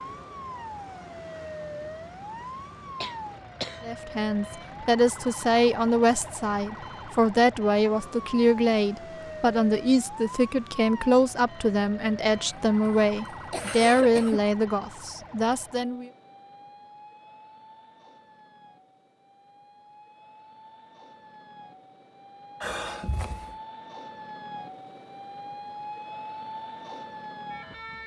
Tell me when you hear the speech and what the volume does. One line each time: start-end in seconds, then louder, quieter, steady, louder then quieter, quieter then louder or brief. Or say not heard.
3.9-16.1 steady.